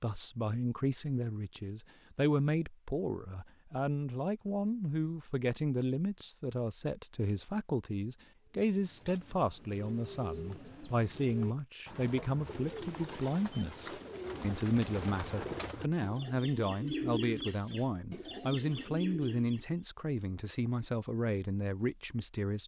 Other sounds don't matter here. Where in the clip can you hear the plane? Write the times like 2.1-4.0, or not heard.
not heard.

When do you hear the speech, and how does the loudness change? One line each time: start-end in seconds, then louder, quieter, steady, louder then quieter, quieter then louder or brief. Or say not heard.
0.0-22.6 steady.